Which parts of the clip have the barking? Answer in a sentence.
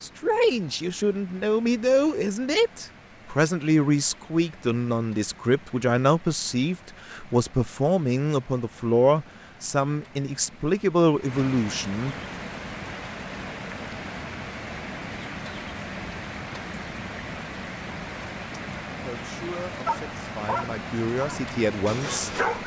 The barking can be heard from 19.9 to 22.6 s.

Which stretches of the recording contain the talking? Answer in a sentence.
You can hear the talking from 0.0 to 12.2 s and from 19.0 to 22.3 s.